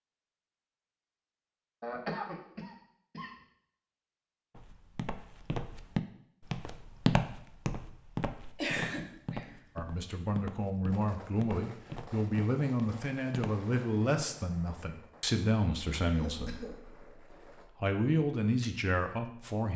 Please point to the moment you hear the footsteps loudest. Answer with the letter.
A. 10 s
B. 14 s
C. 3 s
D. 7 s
D.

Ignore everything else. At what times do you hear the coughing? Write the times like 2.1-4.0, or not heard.
1.8-3.3, 8.6-9.9, 16.1-16.8.